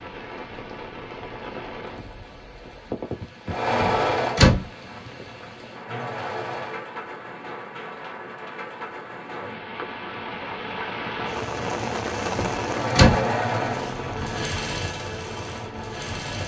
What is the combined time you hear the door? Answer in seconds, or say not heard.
2 s.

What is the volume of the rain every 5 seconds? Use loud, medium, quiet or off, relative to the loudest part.
medium, medium, loud, medium.